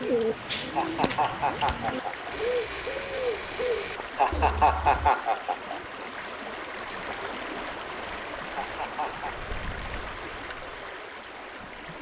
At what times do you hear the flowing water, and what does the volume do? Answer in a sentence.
You can hear the flowing water from 0.0 to 11.9 s, at a steady volume.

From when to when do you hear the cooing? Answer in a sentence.
The cooing can be heard from 0.0 to 5.1 s.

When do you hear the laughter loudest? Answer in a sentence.
The loudest moment of the laughter is at 5 seconds.